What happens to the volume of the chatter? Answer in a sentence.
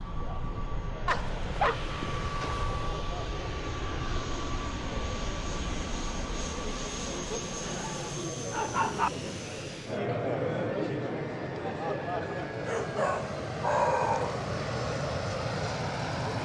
The loudness of the chatter goes up, then down.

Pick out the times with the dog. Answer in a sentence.
You can hear the dog from 1.1 to 2.5 s, from 7.7 to 9.1 s and from 12.7 to 14.4 s.